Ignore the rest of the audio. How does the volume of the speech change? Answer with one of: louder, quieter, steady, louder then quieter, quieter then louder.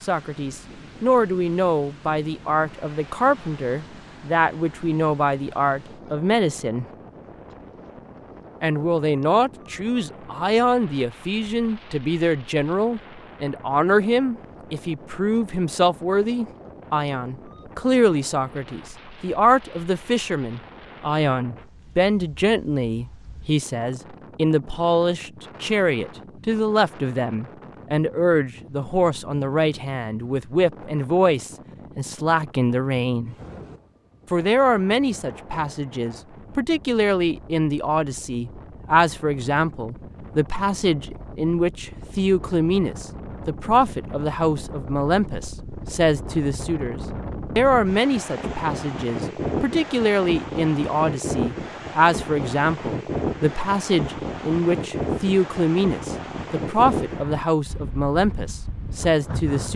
steady.